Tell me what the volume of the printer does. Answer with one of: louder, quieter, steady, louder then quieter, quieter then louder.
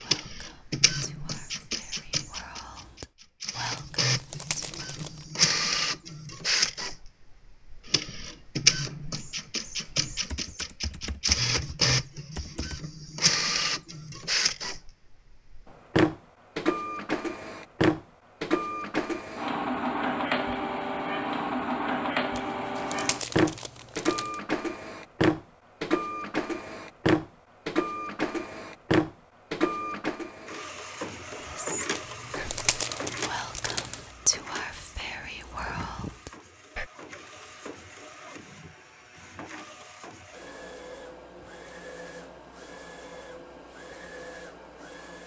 quieter.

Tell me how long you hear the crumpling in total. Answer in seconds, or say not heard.
6 s.